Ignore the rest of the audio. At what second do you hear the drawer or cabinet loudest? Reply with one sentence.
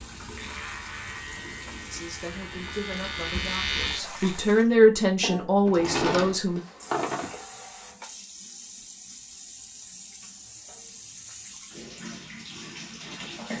The volume of the drawer or cabinet peaks at 6 seconds.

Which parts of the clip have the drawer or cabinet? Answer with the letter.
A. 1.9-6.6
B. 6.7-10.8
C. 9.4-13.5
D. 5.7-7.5
D.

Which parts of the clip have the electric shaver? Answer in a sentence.
The electric shaver can be heard from 0.2 to 4.4 s.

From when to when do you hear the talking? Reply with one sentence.
The talking can be heard from 1.9 to 6.6 s.